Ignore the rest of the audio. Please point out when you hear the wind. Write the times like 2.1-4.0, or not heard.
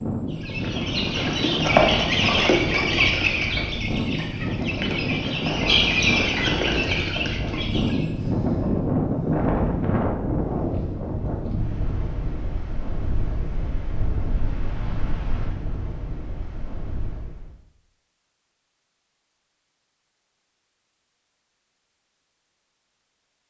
0.0-17.6.